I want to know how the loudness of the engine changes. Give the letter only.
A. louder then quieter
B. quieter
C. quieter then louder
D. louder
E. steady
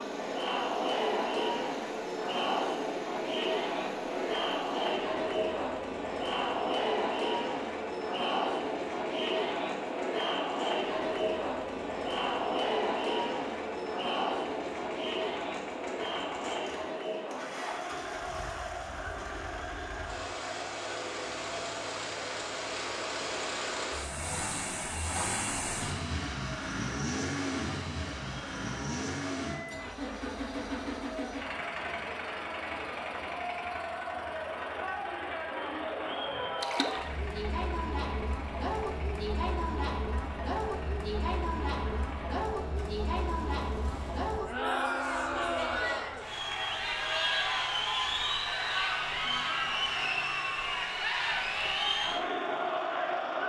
A.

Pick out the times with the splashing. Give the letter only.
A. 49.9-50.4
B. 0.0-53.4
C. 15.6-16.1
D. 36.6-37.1
D.